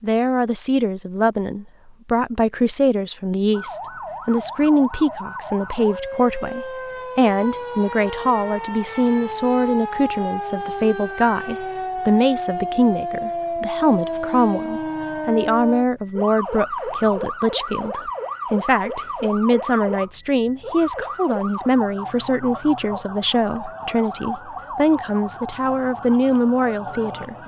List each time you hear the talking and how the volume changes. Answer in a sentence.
You can hear the talking from 0.0 to 27.4 s, at a steady volume.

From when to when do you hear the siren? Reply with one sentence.
You can hear the siren from 3.5 to 27.4 s.